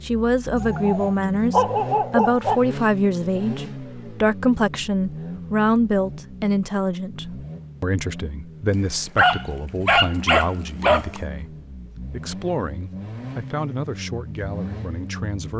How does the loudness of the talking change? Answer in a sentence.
The loudness of the talking goes down.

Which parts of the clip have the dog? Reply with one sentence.
The dog can be heard from 0.6 to 2.6 s and from 8.7 to 11.2 s.